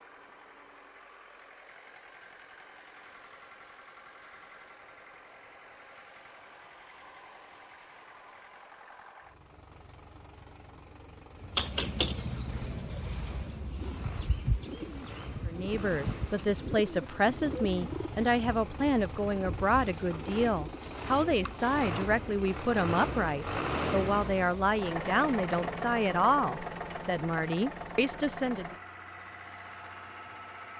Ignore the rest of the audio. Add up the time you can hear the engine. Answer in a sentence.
You can hear the engine for 31 seconds altogether.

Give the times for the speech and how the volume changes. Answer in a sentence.
The speech can be heard from 15.4 to 28.8 s, at a steady volume.